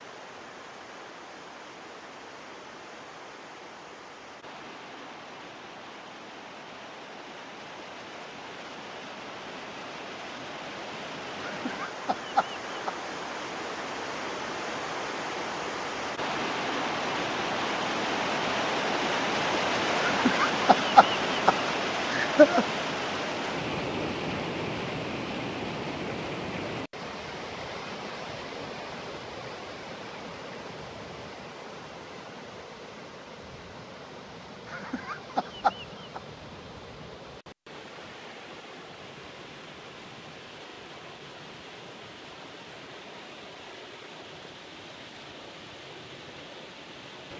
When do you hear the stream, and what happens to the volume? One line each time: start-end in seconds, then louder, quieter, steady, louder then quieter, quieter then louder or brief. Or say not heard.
0.0-47.3 louder then quieter.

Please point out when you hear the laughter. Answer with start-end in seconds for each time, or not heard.
11.4-12.9, 20.0-22.6, 34.6-36.2.